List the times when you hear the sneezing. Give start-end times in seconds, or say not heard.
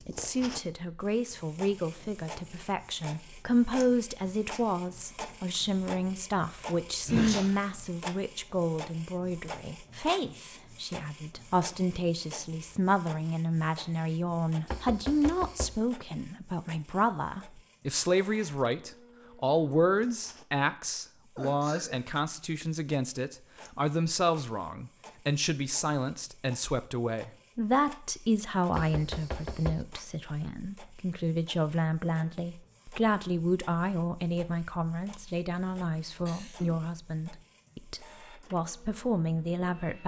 7.0-7.5, 21.4-22.0, 36.2-36.8.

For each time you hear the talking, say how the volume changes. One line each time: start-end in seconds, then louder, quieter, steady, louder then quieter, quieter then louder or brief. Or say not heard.
0.1-40.0 steady.